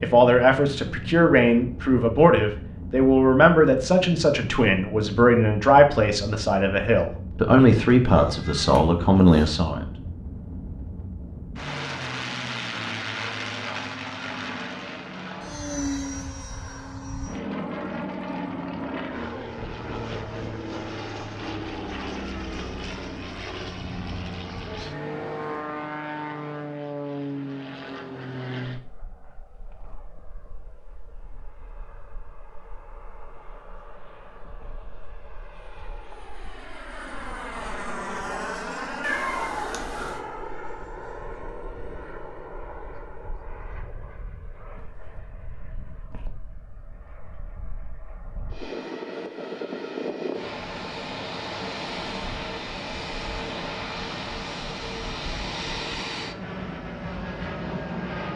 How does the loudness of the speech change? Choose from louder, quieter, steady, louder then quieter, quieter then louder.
steady.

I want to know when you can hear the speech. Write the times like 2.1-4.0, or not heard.
0.0-9.9.